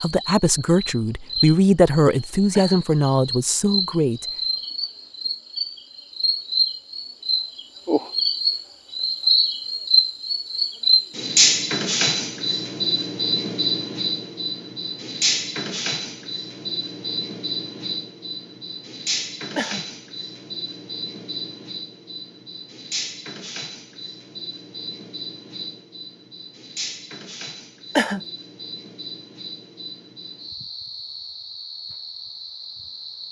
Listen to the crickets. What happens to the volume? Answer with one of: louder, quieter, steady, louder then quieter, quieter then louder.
louder then quieter.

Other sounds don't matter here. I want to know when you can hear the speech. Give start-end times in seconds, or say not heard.
0.0-4.2.